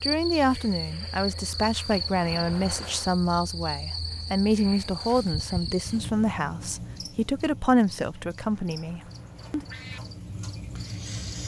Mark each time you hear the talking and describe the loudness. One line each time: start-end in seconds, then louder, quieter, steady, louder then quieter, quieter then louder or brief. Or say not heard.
0.0-9.7 steady.